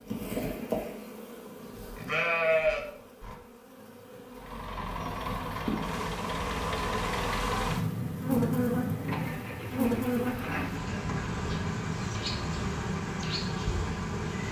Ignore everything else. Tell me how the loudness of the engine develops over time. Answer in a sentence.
The loudness of the engine stays about the same.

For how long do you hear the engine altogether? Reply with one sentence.
The engine can be heard for 10 seconds in total.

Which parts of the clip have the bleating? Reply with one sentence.
The bleating can be heard from 1.9 to 3.4 s.